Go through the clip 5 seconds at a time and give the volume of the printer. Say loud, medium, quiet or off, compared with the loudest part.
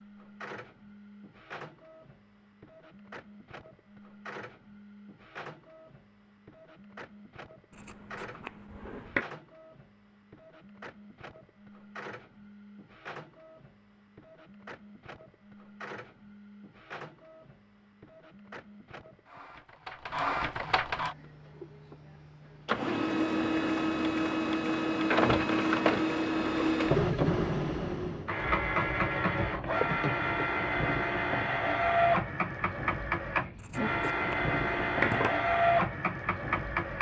quiet, quiet, quiet, quiet, loud, loud, loud, loud.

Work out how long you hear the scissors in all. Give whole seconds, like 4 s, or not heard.
3 s.